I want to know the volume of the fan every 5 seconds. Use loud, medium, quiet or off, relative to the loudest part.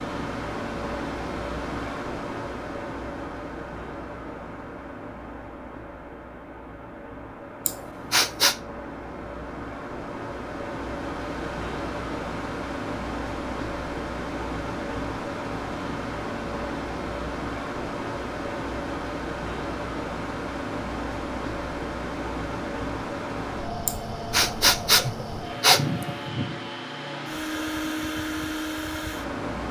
loud, medium, loud, loud, loud, loud.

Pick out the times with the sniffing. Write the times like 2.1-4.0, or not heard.
7.7-8.6, 23.9-26.3.